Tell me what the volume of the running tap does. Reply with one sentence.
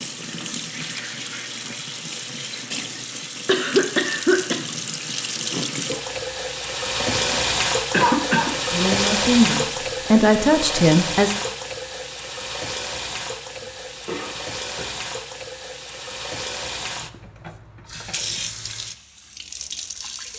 The volume of the running tap goes up, then down.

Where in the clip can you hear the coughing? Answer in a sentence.
The coughing can be heard from 3.5 to 4.5 s, from 7.0 to 8.6 s and from 13.6 to 14.8 s.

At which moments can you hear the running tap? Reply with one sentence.
You can hear the running tap from 0.0 to 20.3 s.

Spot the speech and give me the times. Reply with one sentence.
The speech can be heard from 8.6 to 11.3 s.